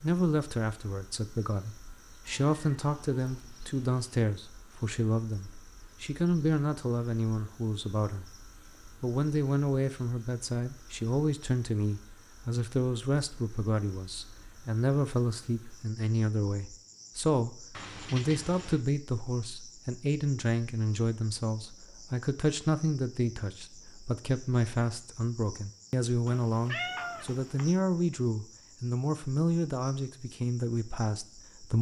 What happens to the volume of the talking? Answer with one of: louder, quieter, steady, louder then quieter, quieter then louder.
steady.